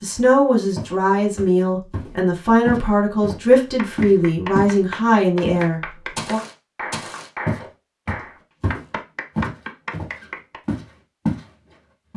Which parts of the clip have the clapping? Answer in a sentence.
You can hear the clapping from 3.6 to 10.6 s.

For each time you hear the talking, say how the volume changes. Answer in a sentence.
You can hear the talking from 0.0 to 6.4 s, at a steady volume.